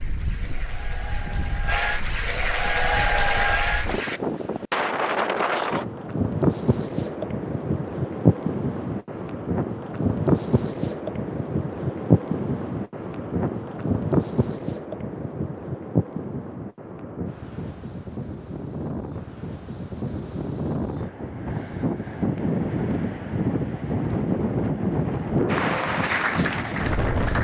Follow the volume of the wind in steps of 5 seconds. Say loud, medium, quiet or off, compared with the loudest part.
medium, loud, loud, medium, loud, loud.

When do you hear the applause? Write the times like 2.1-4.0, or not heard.
0.0-4.2, 25.4-27.3.